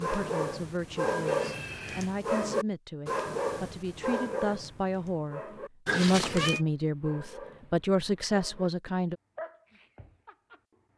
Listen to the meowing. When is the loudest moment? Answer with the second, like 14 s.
6 s.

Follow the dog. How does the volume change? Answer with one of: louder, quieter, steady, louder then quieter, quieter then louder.
quieter.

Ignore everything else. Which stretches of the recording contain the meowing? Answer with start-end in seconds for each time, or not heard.
1.2-2.2, 5.8-6.7.